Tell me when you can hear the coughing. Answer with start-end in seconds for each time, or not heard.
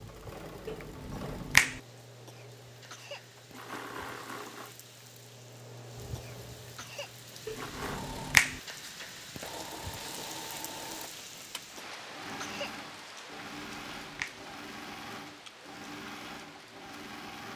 2.2-3.3, 6.2-7.2, 11.8-12.8.